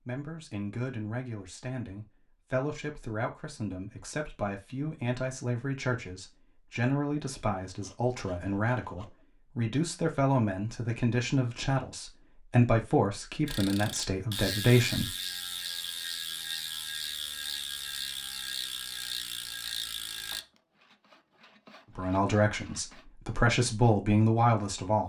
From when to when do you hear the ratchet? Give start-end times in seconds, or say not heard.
13.4-20.4.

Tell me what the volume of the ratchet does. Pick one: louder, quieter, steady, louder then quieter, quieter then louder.
steady.